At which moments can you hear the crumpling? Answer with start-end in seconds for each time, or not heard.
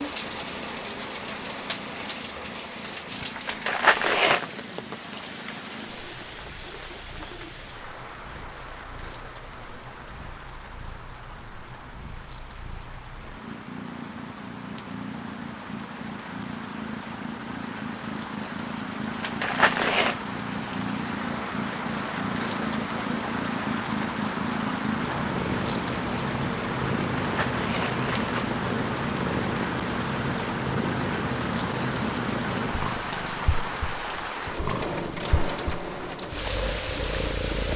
3.5-4.5, 19.2-20.1, 27.2-28.6.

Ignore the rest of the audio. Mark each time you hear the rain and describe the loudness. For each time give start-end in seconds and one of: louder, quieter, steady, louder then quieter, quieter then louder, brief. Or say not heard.
0.0-37.7 quieter then louder.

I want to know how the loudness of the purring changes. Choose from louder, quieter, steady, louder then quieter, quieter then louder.
louder.